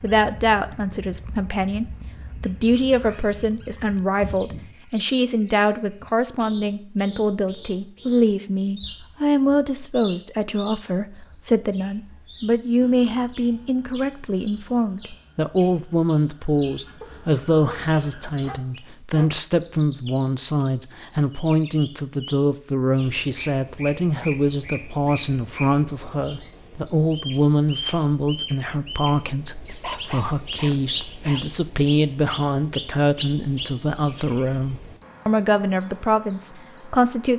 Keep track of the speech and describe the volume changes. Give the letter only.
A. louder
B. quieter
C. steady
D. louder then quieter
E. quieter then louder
C.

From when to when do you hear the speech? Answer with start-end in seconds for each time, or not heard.
0.0-37.3.